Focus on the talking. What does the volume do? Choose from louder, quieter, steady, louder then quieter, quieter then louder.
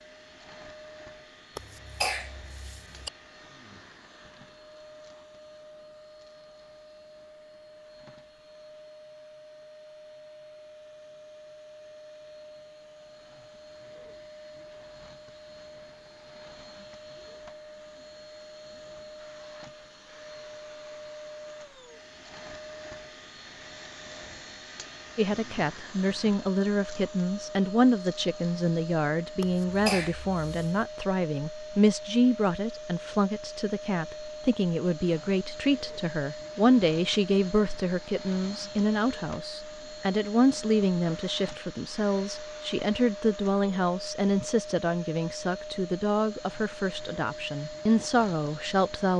steady.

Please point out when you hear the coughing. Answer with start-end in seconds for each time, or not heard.
1.6-3.1, 29.4-30.8.